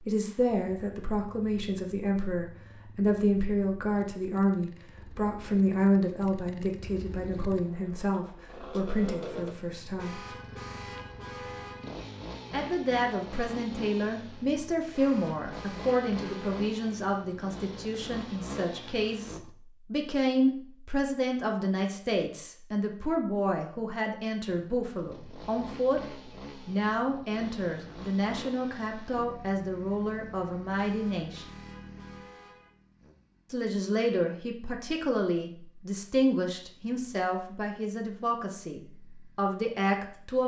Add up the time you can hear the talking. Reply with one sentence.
You can hear the talking for 35 seconds altogether.